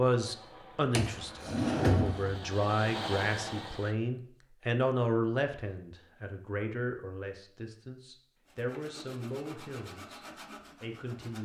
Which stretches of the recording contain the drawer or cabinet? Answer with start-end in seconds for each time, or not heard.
0.9-2.4.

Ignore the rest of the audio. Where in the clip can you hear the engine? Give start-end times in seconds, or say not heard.
0.1-4.0.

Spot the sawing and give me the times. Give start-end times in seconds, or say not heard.
8.4-11.3.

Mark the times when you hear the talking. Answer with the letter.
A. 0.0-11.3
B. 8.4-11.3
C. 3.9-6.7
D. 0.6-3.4
A.